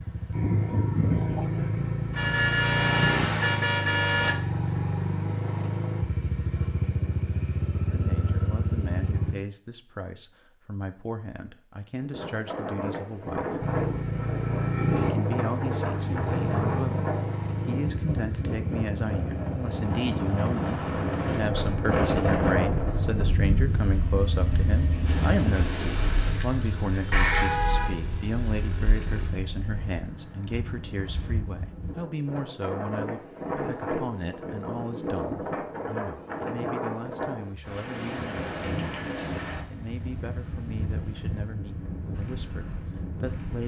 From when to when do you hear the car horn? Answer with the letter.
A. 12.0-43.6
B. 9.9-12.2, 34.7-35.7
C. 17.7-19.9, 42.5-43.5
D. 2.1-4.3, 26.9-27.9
D.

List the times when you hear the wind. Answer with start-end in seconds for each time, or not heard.
12.0-43.6.